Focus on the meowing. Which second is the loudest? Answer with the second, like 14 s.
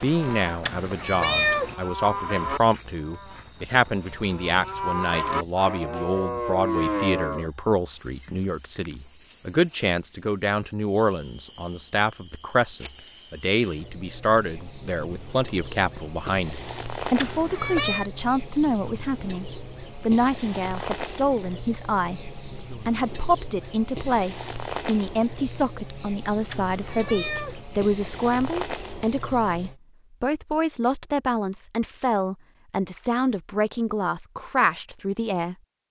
1 s.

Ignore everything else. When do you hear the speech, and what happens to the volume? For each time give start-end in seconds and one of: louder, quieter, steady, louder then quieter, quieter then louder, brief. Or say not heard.
0.0-35.5 steady.